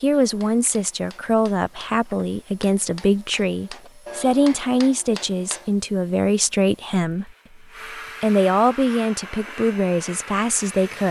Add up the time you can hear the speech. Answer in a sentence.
The speech can be heard for 10 seconds in total.